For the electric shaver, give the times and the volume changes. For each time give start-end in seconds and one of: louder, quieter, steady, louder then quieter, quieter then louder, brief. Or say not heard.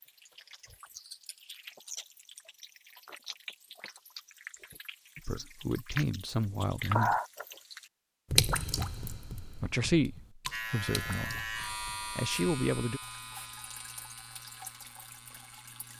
10.5-15.9 quieter.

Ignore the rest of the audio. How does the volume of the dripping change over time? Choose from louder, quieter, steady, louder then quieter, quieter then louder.
louder then quieter.